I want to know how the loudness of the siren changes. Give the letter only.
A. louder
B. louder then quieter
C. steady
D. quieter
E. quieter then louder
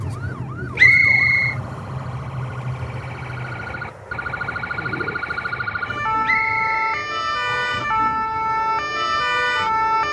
A.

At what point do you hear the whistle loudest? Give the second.
1 s.